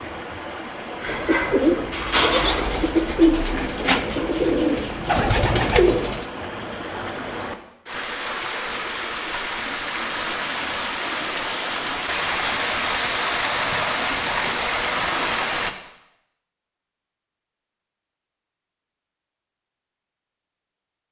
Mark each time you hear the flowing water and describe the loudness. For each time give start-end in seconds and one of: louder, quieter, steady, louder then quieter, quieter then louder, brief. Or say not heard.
0.0-15.8 louder.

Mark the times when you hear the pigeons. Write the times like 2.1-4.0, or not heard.
1.0-6.3.